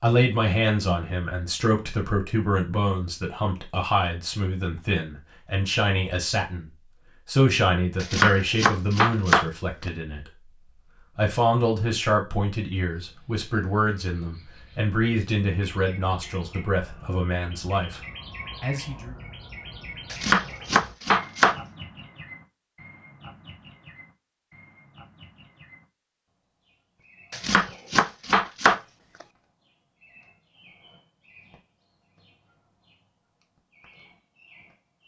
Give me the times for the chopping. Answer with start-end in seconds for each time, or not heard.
8.0-9.4, 20.1-21.6, 27.3-28.8.